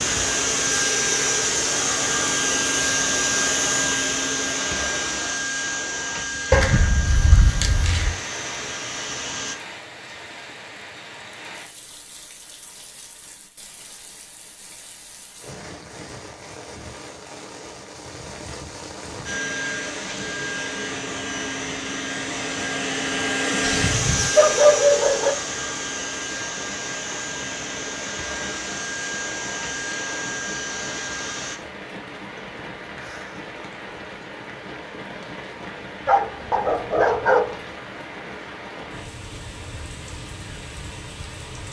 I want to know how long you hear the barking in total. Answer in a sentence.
You can hear the barking for 5 seconds altogether.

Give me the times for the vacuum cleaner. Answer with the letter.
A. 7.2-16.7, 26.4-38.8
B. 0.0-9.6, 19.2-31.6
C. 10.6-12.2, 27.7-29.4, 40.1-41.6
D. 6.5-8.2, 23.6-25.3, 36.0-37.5
B.